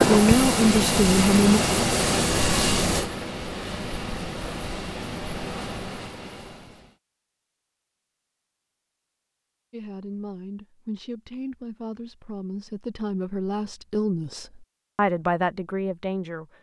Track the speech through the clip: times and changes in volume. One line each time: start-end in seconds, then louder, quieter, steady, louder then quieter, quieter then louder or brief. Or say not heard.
0.1-1.6 brief
9.7-16.4 louder.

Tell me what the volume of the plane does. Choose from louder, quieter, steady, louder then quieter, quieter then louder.
quieter.